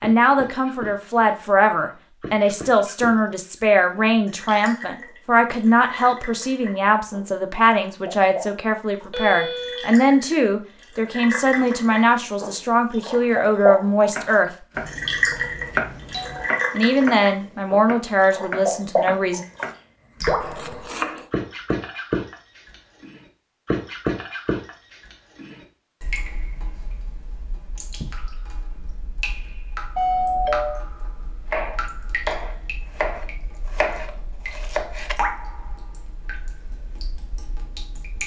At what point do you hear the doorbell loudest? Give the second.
30 s.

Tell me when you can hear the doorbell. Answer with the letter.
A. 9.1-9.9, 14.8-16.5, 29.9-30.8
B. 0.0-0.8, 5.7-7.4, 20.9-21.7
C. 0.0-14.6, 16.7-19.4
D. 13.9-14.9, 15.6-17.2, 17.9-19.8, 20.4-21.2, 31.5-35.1
A.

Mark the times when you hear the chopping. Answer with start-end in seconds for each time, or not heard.
13.9-14.9, 15.6-17.2, 17.9-19.8, 20.4-21.2, 31.5-35.1.